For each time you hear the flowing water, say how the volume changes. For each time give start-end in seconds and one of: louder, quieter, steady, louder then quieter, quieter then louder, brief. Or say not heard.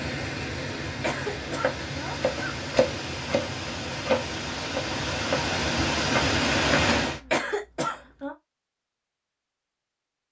0.0-7.2 louder.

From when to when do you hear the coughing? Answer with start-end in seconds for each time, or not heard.
0.8-2.5, 7.0-8.3.